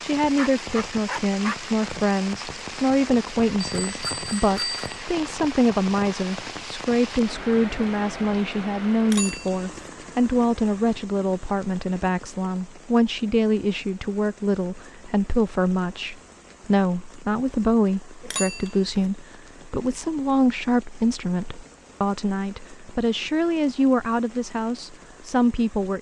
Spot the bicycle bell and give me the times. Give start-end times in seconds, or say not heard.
3.6-5.0, 9.1-9.9, 18.2-18.9.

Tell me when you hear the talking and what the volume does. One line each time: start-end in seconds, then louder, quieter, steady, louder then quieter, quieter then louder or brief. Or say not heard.
0.0-25.9 steady.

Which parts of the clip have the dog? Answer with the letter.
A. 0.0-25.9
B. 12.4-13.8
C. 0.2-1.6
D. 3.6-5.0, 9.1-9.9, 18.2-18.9
C.